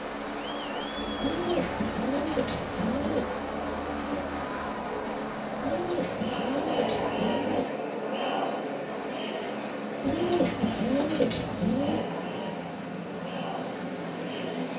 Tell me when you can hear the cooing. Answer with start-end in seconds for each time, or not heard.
1.2-3.2, 5.6-7.7, 10.1-12.1.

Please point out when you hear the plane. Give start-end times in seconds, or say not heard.
0.0-14.7.